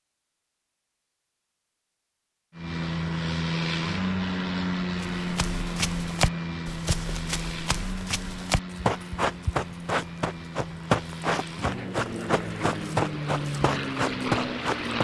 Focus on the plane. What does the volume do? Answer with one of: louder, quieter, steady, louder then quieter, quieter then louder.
quieter then louder.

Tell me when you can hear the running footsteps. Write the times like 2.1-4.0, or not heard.
5.0-14.9.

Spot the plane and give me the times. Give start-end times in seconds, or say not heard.
2.5-14.9.